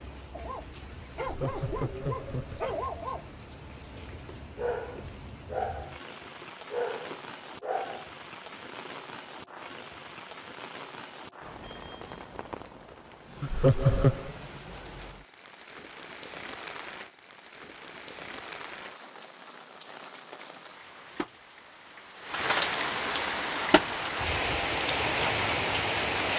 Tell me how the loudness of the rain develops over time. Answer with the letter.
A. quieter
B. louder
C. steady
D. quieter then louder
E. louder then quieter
B.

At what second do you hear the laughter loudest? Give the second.
14 s.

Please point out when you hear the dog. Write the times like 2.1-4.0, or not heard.
0.3-8.9.